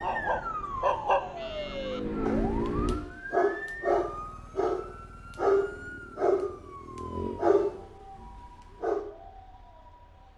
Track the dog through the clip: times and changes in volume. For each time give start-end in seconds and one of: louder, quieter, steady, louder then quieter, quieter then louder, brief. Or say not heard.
0.0-6.6 quieter then louder
7.3-9.1 brief.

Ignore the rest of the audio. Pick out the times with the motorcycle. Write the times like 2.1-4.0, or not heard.
0.0-3.0, 5.6-7.9.